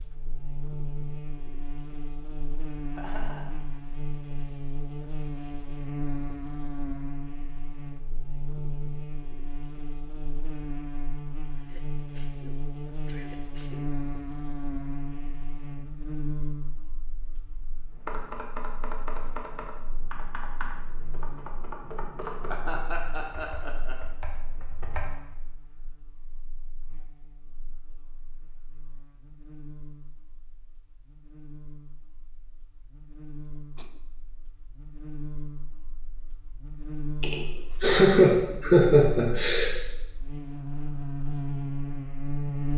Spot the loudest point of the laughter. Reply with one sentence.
The loudest moment of the laughter is at 38 seconds.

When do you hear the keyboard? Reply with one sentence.
The keyboard can be heard from 17.9 to 25.1 s.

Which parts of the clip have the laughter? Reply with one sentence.
The laughter can be heard from 3.0 to 3.5 s, from 22.2 to 23.9 s and from 37.2 to 39.8 s.